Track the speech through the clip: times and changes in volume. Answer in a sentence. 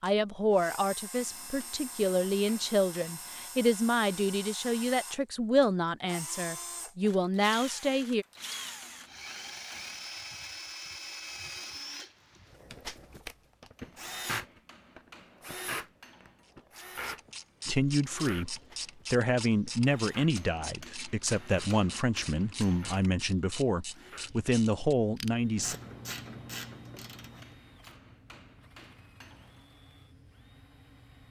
The speech can be heard from 0.0 to 8.2 s, at a steady volume; and from 17.6 to 25.8 s, at a steady volume.